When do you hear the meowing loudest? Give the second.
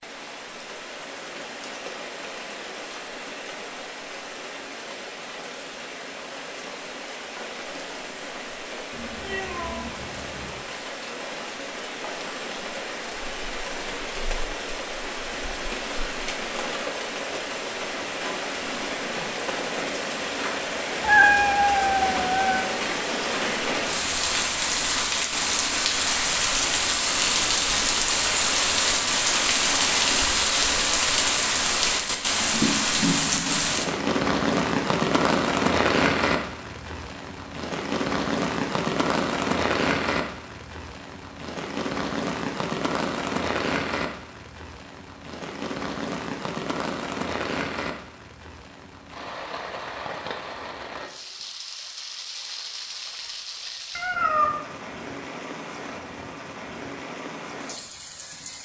21 s.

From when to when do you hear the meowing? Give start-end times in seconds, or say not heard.
8.9-10.6, 21.0-22.6, 54.0-54.6.